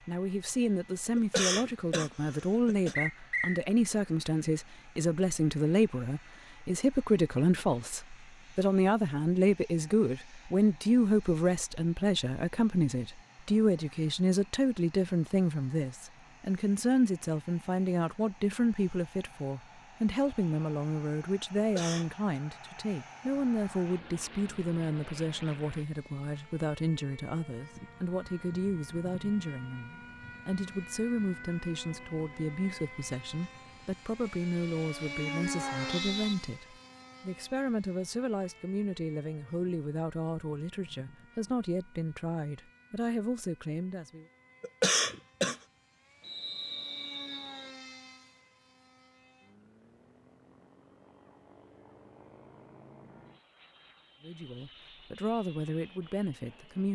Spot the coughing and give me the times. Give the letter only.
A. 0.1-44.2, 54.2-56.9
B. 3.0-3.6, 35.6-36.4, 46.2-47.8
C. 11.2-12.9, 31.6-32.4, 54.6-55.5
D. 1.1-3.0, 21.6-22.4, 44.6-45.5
D.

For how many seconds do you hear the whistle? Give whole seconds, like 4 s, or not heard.
3 s.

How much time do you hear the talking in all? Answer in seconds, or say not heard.
47 s.